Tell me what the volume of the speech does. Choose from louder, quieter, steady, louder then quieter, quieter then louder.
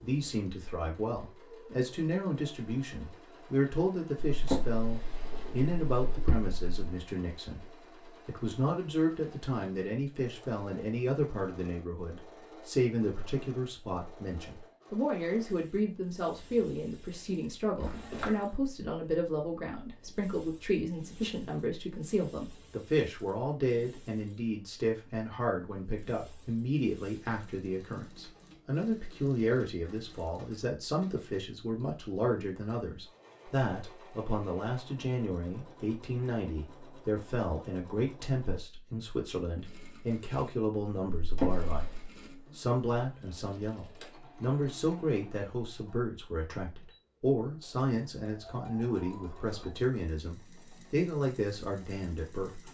steady.